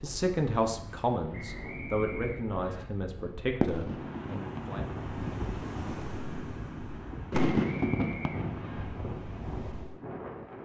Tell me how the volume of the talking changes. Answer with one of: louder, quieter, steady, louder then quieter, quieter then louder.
quieter.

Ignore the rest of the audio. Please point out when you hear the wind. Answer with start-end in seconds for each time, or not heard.
0.0-10.6.